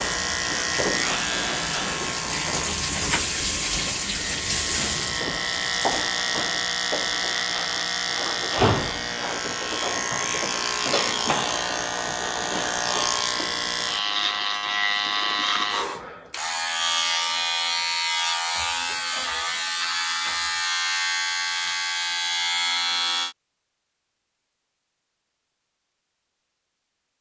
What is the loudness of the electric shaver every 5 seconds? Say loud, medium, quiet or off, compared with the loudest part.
loud, loud, loud, loud, loud, off.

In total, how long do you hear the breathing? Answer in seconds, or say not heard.
not heard.